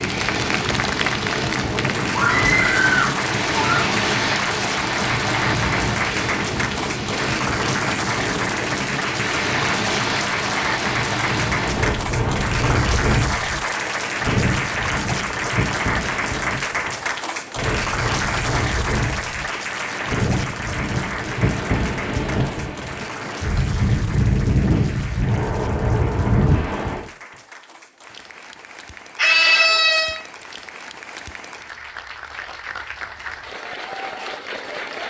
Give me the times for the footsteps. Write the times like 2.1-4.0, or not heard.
not heard.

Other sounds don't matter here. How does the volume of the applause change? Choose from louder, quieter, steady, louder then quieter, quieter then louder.
quieter.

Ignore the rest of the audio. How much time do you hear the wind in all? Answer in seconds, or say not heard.
27 s.